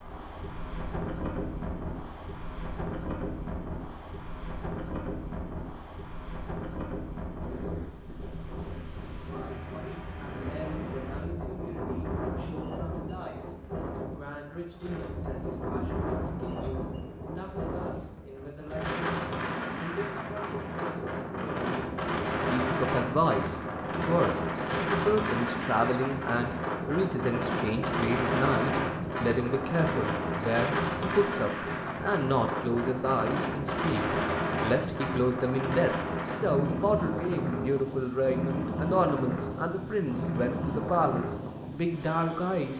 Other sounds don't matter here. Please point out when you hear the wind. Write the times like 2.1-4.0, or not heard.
0.0-42.7.